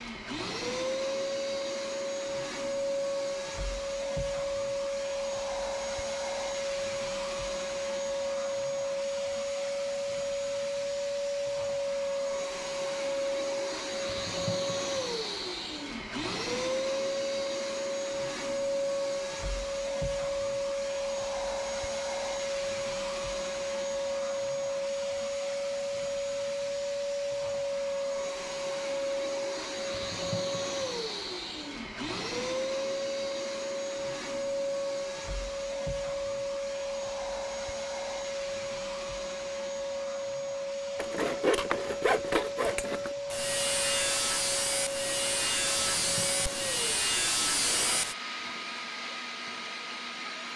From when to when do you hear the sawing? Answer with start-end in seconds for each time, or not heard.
41.0-48.1.